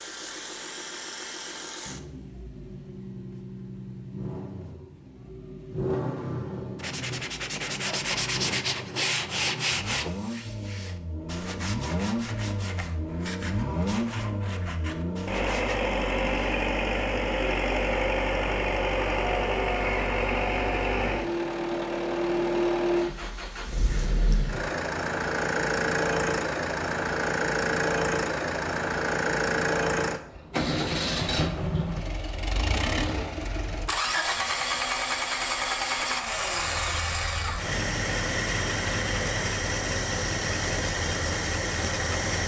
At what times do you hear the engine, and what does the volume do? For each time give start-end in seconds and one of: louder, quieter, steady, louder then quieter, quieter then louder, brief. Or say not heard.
0.0-42.4 louder.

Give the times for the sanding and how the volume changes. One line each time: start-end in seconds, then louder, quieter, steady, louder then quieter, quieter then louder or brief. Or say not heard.
6.8-15.8 quieter.